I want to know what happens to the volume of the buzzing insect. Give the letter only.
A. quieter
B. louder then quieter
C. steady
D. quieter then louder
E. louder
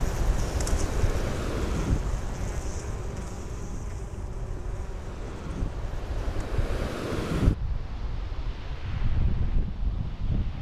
A.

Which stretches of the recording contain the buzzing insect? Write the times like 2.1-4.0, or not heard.
0.0-6.5.